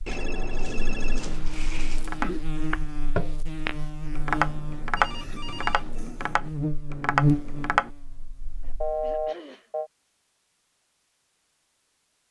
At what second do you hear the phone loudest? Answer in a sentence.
The loudest moment of the phone is at 9 seconds.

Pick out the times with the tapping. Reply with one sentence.
You can hear the tapping from 1.9 to 7.9 s.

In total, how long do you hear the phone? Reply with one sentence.
The phone can be heard for 4 seconds in total.